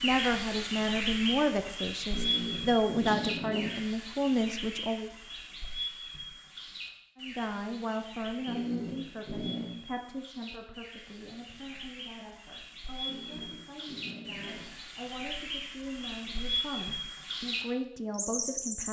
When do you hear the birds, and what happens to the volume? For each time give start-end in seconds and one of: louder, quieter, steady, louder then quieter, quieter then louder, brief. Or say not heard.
0.0-18.8 quieter then louder.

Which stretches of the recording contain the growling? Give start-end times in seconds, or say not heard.
2.1-3.8, 8.4-9.7, 13.1-14.8.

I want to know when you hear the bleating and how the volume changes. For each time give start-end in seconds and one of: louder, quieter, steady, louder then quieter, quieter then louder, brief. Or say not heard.
not heard.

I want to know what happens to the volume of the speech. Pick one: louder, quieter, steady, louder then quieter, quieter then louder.
quieter then louder.